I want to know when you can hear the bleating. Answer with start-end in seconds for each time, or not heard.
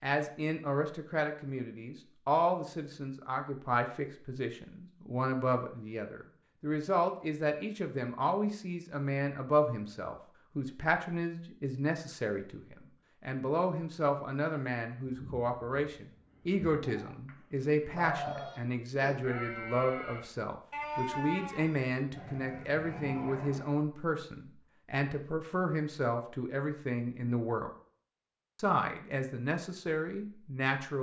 15.1-23.8.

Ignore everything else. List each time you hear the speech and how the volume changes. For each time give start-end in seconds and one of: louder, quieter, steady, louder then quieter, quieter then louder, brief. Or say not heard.
0.0-27.7 steady
28.6-30.9 brief.